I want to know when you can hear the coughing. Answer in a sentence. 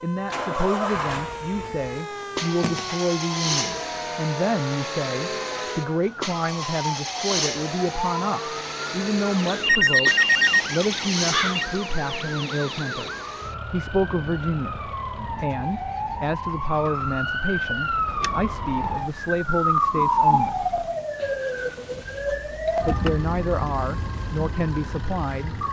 The coughing can't be heard in this clip.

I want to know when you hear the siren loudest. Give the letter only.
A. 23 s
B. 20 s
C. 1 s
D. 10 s
B.